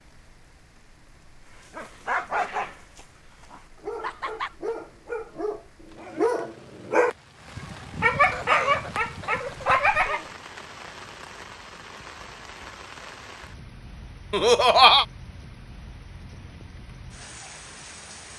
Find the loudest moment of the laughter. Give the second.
15 s.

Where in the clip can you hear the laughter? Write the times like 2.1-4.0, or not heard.
4.0-4.5, 8.1-10.3, 14.3-15.1.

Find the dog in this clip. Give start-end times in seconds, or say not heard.
1.8-10.2.